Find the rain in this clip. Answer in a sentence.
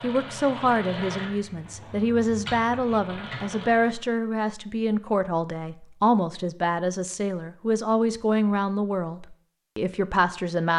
The rain can't be heard in this clip.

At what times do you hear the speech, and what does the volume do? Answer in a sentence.
The speech can be heard from 0.0 to 10.7 s, at a steady volume.